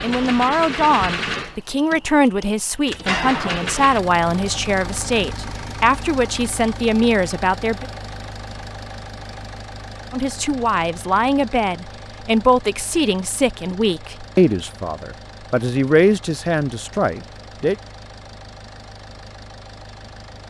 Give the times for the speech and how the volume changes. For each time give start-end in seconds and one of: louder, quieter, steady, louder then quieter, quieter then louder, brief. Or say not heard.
0.0-7.8 steady
10.1-17.8 steady.